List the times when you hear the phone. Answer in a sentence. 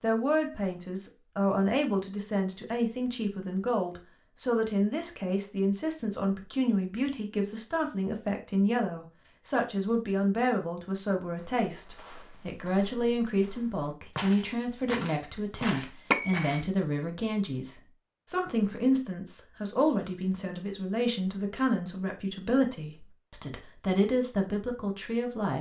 The phone can be heard from 16.1 to 16.6 s.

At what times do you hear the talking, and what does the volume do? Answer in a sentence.
The talking can be heard from 0.0 to 25.5 s, at a steady volume.